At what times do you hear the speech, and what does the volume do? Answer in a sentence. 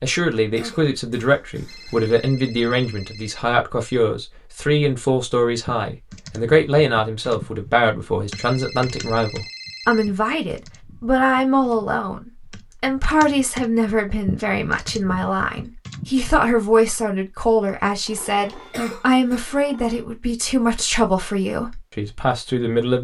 You can hear the speech from 0.0 to 22.9 s, at a steady volume.